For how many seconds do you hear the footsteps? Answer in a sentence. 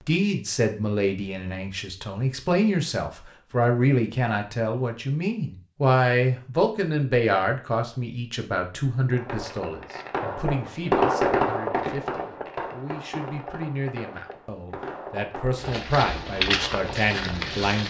You can hear the footsteps for 2 seconds altogether.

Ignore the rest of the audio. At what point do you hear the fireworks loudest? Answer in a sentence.
The volume of the fireworks peaks at 11 seconds.